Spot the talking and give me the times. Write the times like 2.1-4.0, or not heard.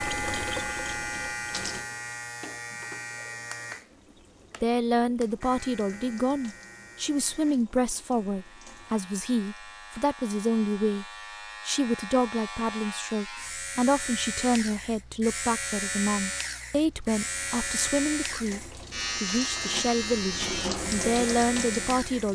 4.6-11.1, 11.7-22.2.